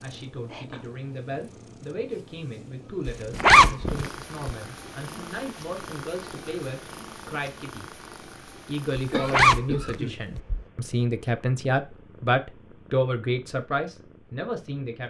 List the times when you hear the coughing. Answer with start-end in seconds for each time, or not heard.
9.1-10.6.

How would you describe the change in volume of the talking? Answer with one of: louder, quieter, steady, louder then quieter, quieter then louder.
louder.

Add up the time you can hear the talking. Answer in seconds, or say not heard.
14 s.